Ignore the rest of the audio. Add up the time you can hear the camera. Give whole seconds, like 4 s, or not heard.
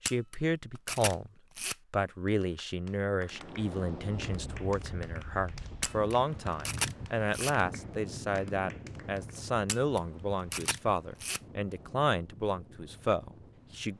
5 s.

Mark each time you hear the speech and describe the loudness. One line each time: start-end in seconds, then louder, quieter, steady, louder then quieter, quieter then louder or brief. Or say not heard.
0.0-1.3 brief
1.9-13.9 steady.